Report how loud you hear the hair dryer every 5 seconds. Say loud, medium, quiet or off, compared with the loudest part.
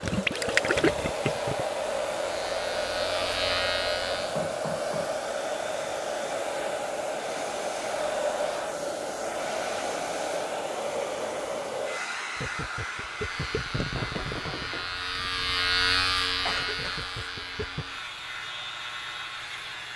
loud, loud, loud, medium.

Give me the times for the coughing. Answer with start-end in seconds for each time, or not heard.
16.4-17.1.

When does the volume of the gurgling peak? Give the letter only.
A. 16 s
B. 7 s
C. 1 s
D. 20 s
C.